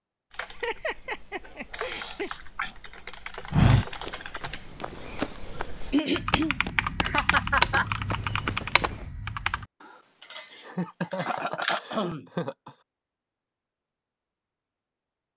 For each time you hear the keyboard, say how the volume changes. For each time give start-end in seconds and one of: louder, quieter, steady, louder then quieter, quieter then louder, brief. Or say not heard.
0.3-11.8 louder then quieter.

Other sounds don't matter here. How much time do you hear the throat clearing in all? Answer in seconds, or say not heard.
3 s.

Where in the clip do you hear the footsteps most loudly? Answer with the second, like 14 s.
4 s.